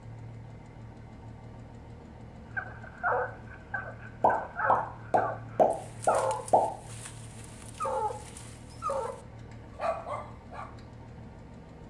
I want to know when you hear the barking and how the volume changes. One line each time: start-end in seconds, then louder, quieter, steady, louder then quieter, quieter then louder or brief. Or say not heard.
2.5-9.2 quieter then louder
9.8-10.7 brief.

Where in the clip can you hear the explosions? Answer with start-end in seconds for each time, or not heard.
4.2-6.7.